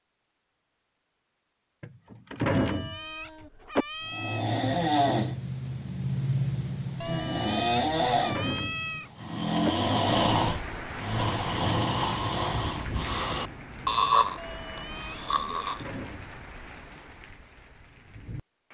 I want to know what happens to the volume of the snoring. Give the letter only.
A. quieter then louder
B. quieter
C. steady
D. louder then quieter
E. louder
C.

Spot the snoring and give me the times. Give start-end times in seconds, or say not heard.
4.0-15.8.